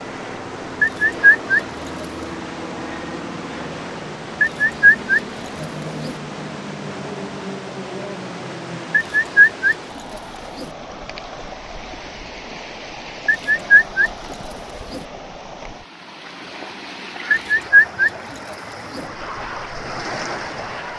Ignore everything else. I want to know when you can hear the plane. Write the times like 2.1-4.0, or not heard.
0.0-9.1, 19.0-20.9.